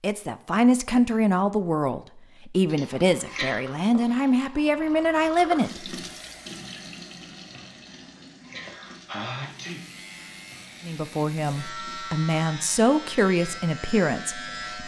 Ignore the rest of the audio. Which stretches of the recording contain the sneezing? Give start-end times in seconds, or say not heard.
2.6-3.6, 7.8-10.3.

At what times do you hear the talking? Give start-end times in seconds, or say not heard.
0.0-6.0, 10.8-14.8.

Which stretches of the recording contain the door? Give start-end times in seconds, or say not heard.
not heard.